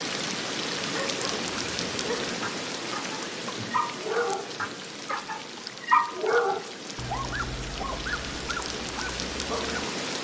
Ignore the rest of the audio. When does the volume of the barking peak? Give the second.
6 s.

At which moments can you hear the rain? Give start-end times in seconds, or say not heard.
0.0-10.1.